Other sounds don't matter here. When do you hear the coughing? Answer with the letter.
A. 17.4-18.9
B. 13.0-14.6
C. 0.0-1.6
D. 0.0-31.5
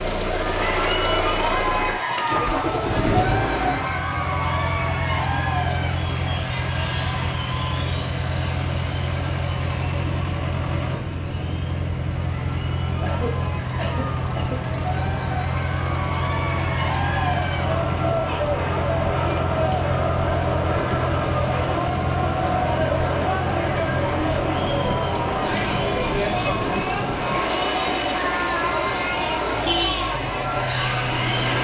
B.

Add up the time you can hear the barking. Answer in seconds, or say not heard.
not heard.